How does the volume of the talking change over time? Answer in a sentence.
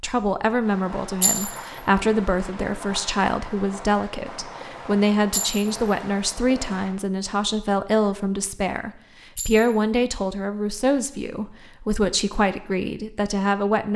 The loudness of the talking stays about the same.